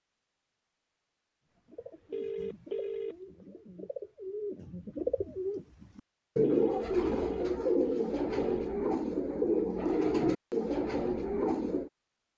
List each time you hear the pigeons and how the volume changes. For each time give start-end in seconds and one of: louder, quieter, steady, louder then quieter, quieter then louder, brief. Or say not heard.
1.7-11.9 louder.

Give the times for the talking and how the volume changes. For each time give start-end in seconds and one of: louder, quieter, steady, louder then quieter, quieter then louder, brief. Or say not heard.
not heard.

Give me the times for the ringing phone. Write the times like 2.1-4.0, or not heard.
2.1-3.1, 6.4-8.8.